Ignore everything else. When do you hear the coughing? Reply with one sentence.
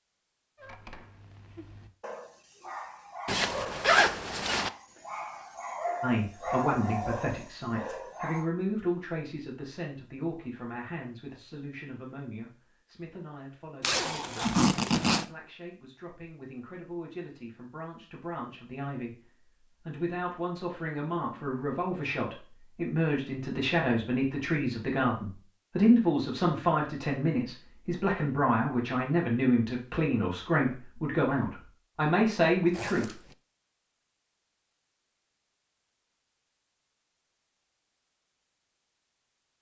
You can't hear the coughing here.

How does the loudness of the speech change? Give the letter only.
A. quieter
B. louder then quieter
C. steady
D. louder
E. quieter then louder
E.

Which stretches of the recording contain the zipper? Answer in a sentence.
The zipper can be heard from 3.2 to 4.7 s, from 13.8 to 15.2 s and from 32.7 to 33.4 s.